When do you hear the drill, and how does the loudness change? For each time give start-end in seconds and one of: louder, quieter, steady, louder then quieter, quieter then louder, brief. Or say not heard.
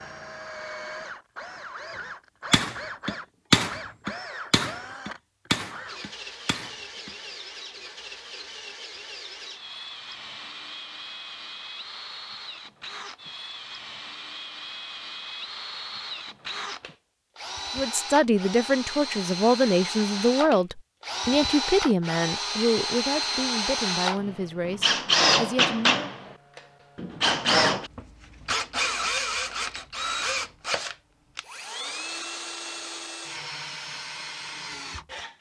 0.0-35.3 louder then quieter.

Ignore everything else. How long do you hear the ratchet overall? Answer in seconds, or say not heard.
not heard.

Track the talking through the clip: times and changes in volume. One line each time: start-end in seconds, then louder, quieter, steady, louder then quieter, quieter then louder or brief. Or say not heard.
17.8-26.1 quieter.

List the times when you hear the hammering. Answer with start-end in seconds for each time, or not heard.
2.5-7.1.